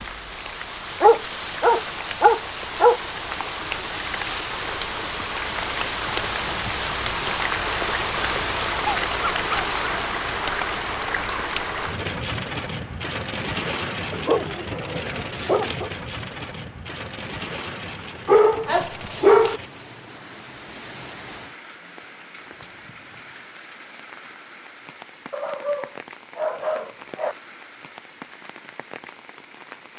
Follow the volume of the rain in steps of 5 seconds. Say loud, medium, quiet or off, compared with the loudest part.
medium, loud, loud, medium, quiet, quiet.